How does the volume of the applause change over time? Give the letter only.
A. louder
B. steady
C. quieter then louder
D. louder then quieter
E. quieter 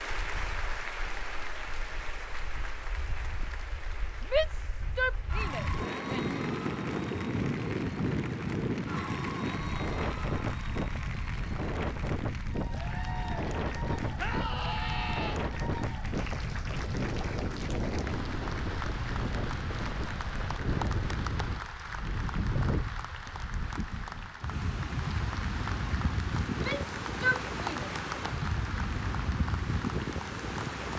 B.